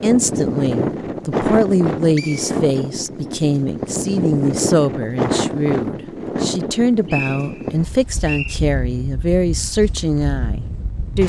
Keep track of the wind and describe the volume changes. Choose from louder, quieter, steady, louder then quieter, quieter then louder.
quieter.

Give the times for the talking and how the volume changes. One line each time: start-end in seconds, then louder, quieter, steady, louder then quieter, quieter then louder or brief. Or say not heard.
0.0-11.2 steady.